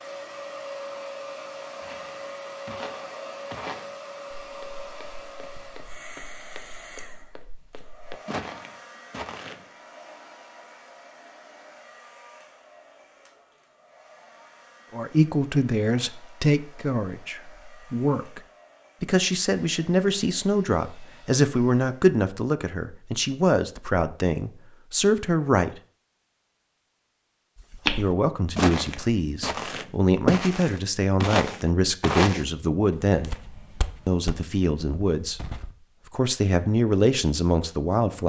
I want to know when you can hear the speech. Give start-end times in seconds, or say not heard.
14.9-18.4, 19.0-25.8, 27.9-33.4, 34.0-35.4, 36.0-38.2.